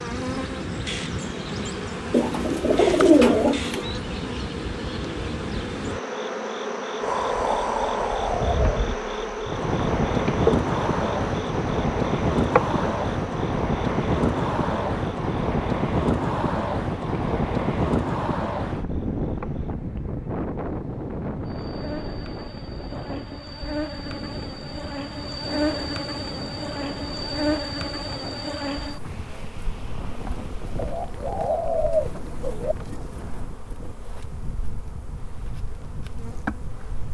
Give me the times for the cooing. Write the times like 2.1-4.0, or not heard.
2.1-3.9, 30.8-32.8.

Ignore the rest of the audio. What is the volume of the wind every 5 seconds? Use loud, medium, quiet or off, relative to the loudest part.
off, loud, loud, loud, medium, quiet, quiet, quiet.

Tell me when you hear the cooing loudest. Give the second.
3 s.